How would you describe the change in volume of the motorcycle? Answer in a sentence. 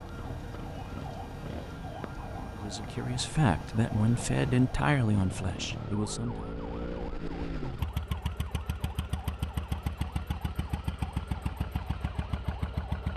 The volume of the motorcycle goes up.